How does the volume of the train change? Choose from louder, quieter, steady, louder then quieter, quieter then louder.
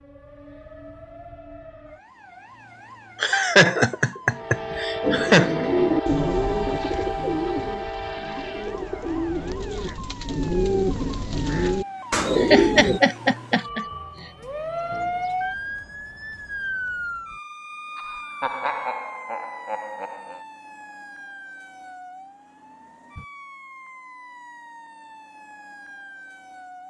quieter.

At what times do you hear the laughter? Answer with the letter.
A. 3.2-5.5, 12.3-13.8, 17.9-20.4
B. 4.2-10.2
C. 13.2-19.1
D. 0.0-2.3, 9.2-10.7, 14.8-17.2
A.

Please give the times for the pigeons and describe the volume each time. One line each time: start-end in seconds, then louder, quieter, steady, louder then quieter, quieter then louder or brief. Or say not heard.
5.0-13.0 quieter then louder.